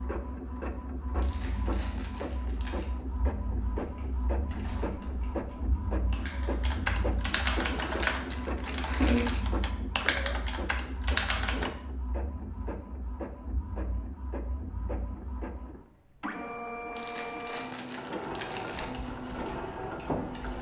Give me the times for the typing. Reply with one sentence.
You can hear the typing from 3.7 to 11.7 s and from 18.8 to 20.5 s.